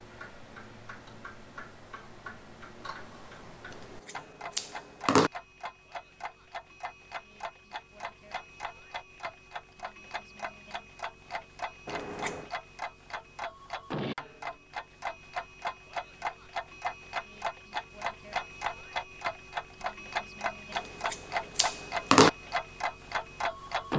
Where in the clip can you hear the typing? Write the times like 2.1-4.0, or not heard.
not heard.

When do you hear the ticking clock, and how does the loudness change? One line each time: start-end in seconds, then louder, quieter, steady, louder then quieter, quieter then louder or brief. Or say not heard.
0.0-23.9 louder.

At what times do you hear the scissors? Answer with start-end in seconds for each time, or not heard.
3.7-5.3, 11.8-12.5, 20.8-22.3.